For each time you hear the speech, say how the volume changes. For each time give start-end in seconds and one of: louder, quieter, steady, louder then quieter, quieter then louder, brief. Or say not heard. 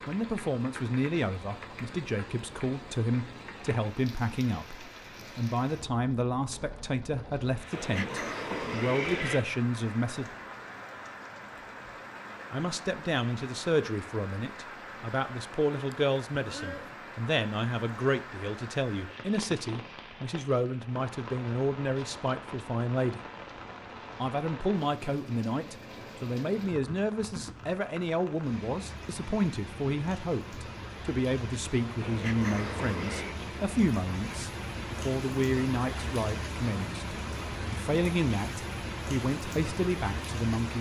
0.1-10.3 steady
12.5-23.2 steady
24.2-40.7 steady.